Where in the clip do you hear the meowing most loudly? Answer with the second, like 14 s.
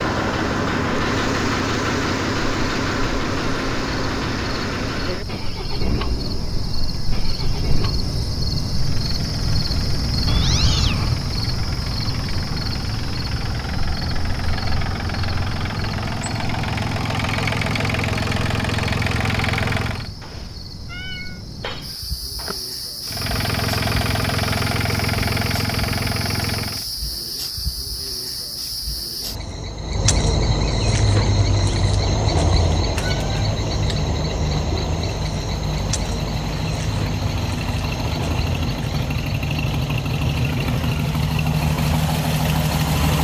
11 s.